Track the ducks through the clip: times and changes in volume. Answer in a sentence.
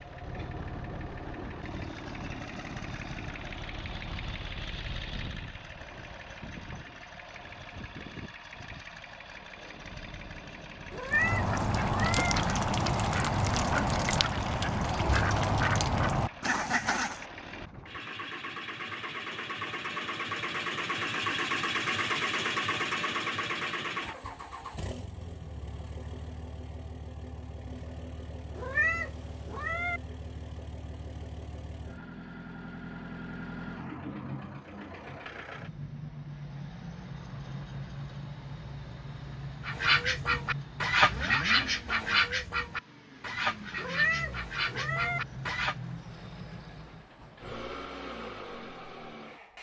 The ducks can be heard from 11.1 to 17.2 s, at a steady volume; and from 39.6 to 45.8 s, getting quieter.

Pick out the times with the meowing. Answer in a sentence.
You can hear the meowing from 10.9 to 12.3 s, from 28.6 to 30.0 s and from 43.8 to 45.2 s.